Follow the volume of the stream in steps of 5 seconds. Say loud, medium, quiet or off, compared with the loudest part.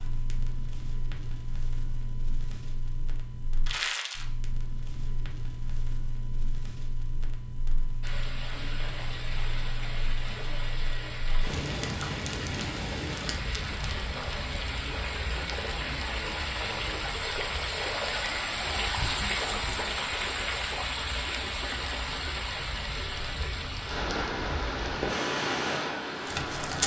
off, medium, medium, loud, loud, loud.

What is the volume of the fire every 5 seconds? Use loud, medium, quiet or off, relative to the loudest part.
medium, medium, medium, quiet, quiet, loud.